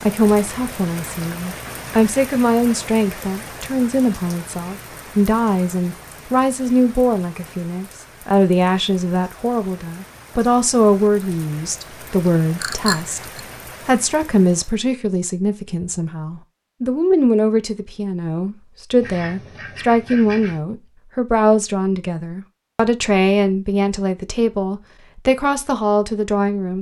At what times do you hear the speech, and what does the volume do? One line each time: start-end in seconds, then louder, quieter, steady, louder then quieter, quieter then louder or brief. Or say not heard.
0.0-26.7 steady.